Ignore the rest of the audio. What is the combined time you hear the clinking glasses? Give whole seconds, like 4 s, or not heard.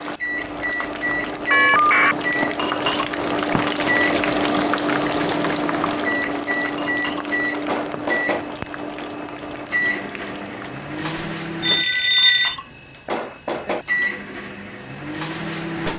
4 s.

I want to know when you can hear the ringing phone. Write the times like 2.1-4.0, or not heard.
1.5-2.1, 11.6-12.6.